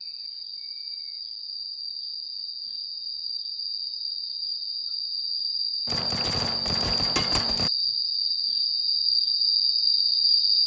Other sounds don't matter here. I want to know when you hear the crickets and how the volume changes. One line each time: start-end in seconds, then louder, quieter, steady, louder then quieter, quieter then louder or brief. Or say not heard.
0.0-10.6 louder.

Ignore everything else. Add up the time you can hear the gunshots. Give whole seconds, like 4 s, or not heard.
2 s.